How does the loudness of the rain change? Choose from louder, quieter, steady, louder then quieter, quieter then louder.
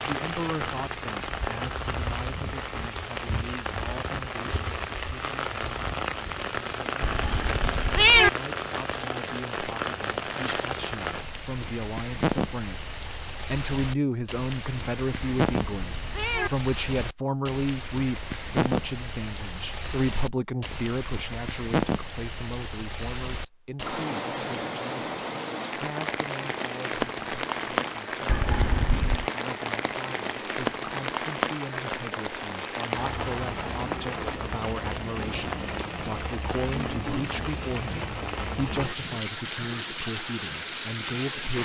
steady.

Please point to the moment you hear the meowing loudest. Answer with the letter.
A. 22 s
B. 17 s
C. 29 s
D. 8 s
D.